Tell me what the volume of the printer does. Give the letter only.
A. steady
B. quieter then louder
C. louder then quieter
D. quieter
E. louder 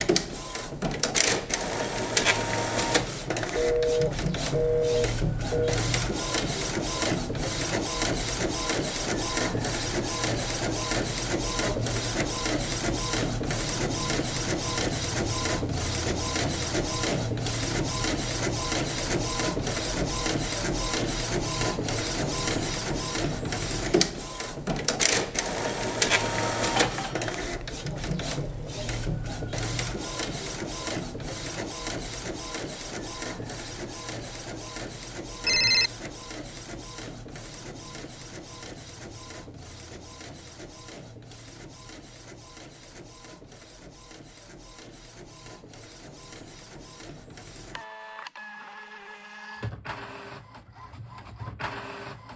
D.